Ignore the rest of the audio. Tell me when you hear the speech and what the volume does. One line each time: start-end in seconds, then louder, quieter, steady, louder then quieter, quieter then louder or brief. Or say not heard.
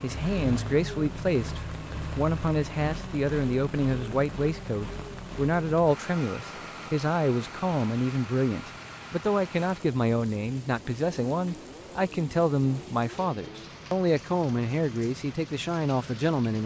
0.0-16.6 steady.